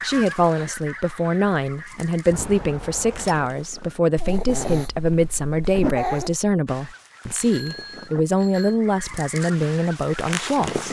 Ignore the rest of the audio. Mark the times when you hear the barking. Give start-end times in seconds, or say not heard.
4.2-6.3.